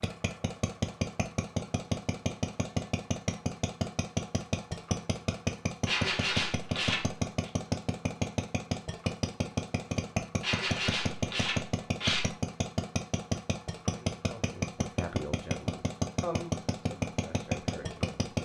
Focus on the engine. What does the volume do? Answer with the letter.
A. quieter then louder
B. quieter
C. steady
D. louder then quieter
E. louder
C.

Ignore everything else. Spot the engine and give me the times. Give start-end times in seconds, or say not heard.
0.0-18.3.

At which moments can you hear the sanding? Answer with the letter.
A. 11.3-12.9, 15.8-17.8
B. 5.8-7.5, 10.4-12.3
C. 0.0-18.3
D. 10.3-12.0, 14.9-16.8
B.